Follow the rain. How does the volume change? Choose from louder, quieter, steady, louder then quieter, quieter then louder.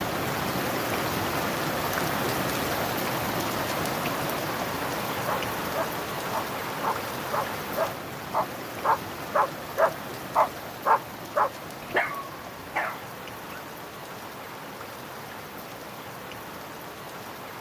quieter.